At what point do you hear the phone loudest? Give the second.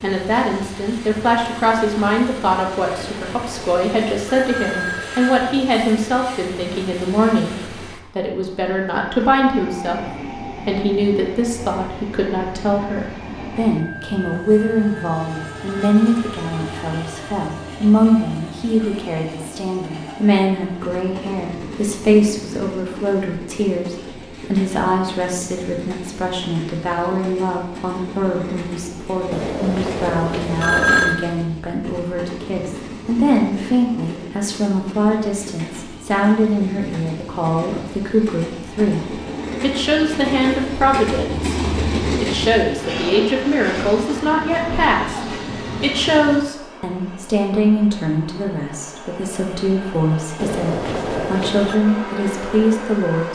31 s.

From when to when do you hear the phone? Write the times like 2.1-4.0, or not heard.
3.0-5.5, 29.3-31.2, 50.4-51.8.